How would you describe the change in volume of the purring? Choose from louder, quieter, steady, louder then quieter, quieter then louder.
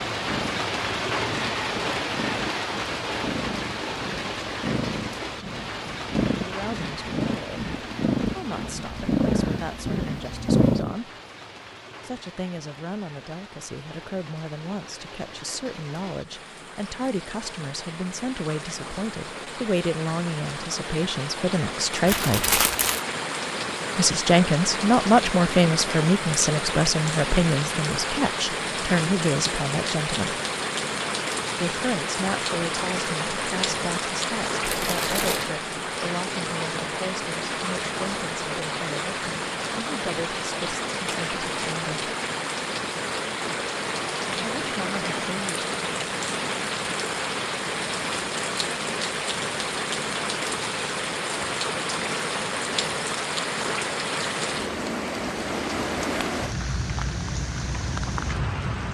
louder.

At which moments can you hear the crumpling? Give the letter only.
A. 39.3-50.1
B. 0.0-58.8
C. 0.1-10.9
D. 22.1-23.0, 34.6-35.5
D.